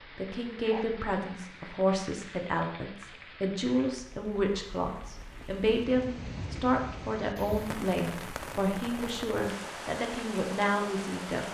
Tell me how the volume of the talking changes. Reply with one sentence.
The loudness of the talking stays about the same.